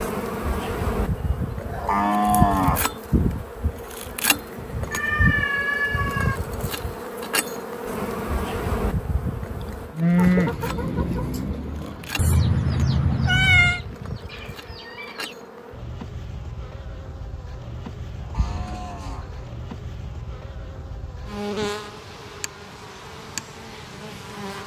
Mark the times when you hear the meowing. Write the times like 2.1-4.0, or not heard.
4.9-6.4, 12.2-13.8, 18.4-19.3.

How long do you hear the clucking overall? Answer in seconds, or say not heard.
5 s.